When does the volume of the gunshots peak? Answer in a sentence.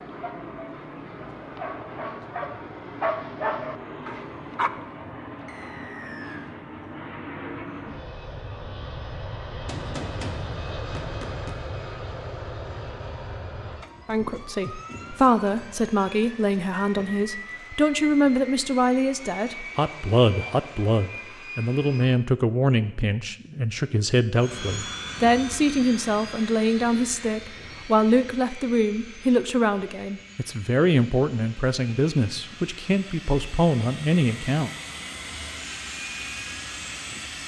The volume of the gunshots peaks at 10 seconds.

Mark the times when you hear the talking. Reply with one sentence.
The talking can be heard from 14.1 to 34.7 s.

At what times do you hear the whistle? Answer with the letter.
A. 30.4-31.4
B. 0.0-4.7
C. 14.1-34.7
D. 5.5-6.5
D.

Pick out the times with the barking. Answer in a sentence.
The barking can be heard from 0.0 to 4.7 s.